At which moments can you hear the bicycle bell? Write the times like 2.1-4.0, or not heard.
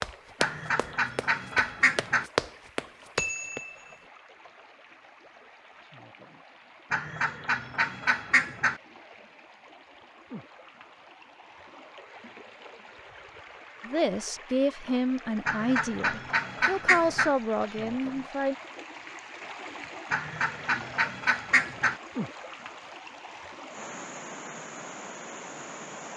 3.1-4.0.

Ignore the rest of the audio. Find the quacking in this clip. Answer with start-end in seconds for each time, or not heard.
0.4-2.2, 6.9-8.8, 15.4-17.4, 20.1-22.0.